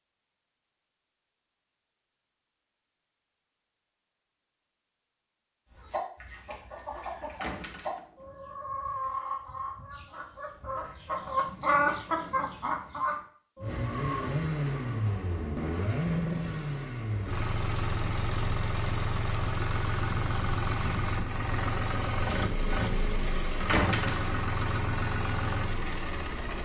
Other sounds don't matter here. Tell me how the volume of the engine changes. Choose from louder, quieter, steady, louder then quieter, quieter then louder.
steady.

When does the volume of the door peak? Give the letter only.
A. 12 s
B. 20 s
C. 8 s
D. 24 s
D.